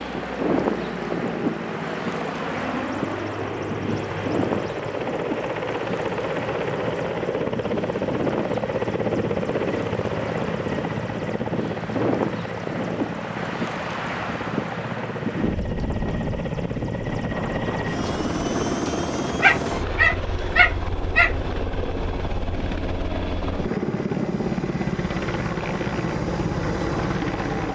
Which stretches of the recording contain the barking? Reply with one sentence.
The barking can be heard from 19.4 to 21.4 s.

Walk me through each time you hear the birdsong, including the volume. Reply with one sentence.
The birdsong can't be heard in this clip.